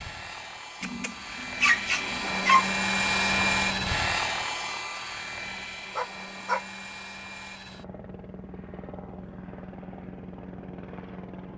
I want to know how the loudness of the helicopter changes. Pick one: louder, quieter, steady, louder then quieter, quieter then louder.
louder then quieter.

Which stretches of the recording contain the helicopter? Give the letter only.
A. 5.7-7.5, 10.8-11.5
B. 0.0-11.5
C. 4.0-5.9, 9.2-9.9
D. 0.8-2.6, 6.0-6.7
B.